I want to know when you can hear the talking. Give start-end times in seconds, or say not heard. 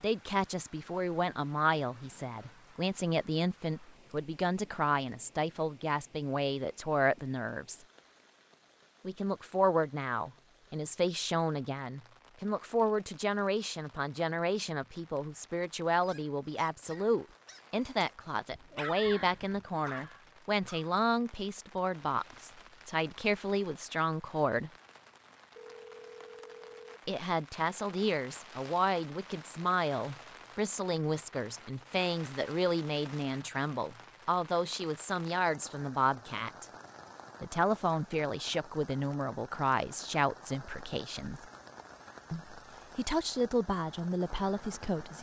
0.0-7.8, 9.1-24.7, 27.1-36.6, 37.4-41.5, 42.3-45.1.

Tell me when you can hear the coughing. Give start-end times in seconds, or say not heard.
not heard.